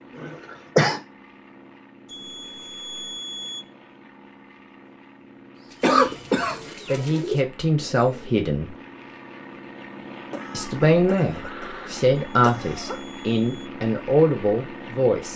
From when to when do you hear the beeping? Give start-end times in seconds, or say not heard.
2.0-3.6, 12.2-13.7.